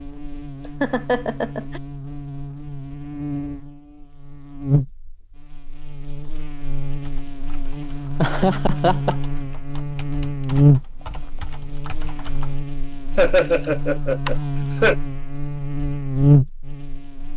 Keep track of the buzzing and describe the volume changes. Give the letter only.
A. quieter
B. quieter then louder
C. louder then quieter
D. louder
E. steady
D.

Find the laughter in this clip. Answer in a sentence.
The laughter can be heard from 0.8 to 1.8 s, from 8.2 to 9.2 s and from 13.2 to 14.9 s.